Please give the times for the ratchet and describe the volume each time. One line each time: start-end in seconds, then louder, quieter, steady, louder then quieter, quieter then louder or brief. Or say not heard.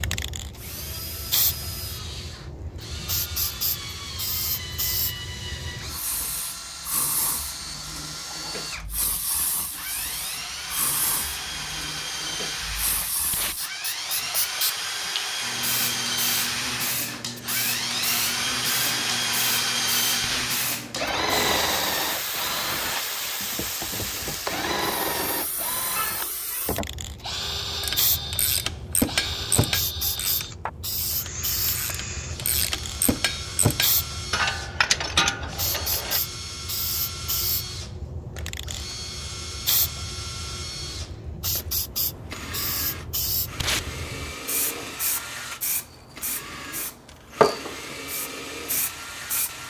27.8-36.2 quieter then louder.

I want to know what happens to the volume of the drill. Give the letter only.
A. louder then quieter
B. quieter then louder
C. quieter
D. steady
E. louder
A.